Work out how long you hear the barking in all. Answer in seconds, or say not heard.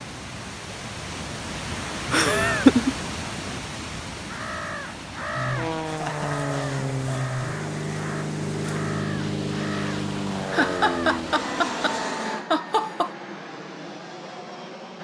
not heard.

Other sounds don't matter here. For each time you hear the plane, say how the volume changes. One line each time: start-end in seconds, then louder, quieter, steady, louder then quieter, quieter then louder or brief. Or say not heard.
5.3-14.9 quieter.